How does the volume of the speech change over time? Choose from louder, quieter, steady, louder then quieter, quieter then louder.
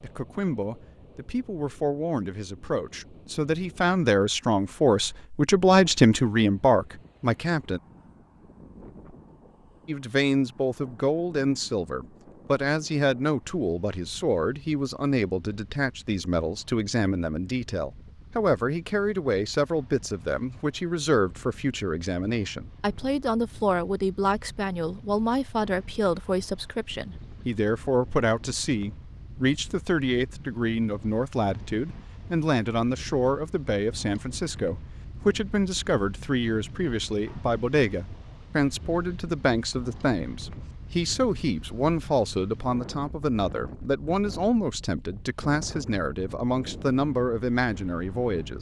steady.